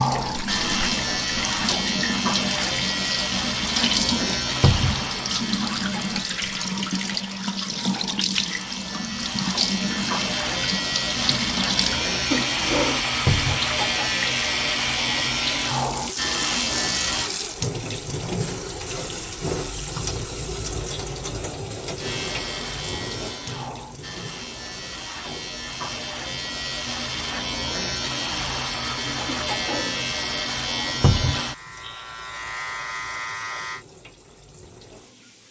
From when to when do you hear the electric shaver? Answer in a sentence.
You can hear the electric shaver from 0.0 to 17.3 s and from 21.9 to 33.9 s.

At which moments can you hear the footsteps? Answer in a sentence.
You can't hear the footsteps here.